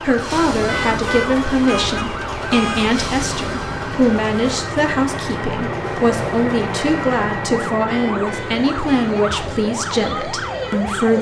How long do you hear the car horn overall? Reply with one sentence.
You can hear the car horn for 4 seconds altogether.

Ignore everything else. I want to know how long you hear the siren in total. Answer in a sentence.
You can hear the siren for 11 seconds altogether.